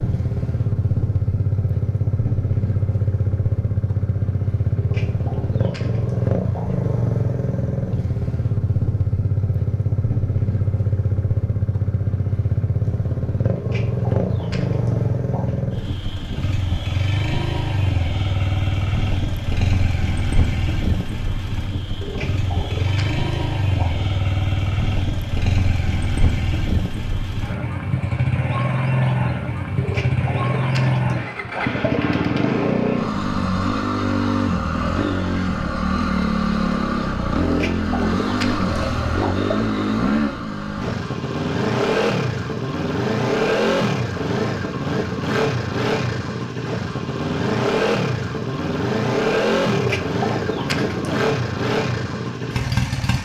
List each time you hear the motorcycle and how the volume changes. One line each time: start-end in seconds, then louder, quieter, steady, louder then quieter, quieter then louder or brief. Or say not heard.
0.0-53.2 steady.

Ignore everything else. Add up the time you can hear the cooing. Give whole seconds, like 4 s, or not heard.
13 s.